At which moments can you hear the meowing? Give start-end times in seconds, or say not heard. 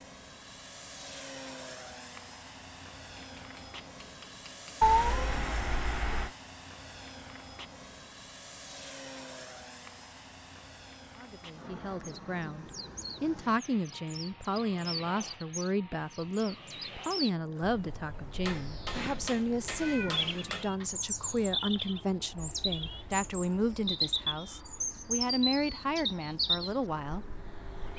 4.8-6.3, 18.4-20.9.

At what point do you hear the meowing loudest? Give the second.
5 s.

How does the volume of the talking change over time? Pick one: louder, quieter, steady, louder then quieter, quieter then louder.
steady.